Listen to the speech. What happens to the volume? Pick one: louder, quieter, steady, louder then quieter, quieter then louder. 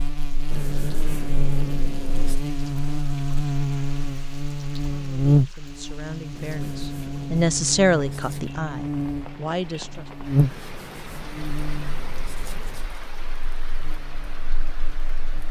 louder then quieter.